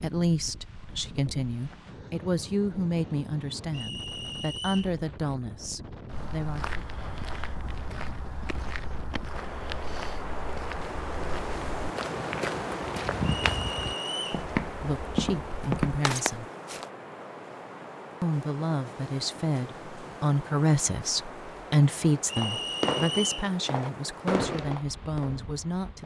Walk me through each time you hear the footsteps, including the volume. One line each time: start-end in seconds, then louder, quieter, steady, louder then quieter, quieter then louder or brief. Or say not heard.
6.1-16.9 louder.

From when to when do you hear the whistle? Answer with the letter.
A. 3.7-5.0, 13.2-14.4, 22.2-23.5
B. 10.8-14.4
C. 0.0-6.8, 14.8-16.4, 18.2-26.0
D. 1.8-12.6
A.